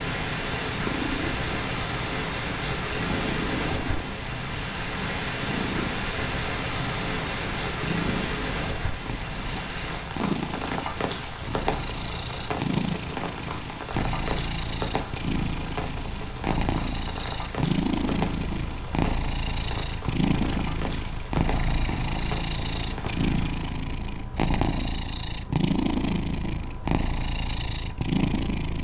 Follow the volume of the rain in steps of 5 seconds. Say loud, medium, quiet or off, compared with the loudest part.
loud, loud, loud, medium, medium, off.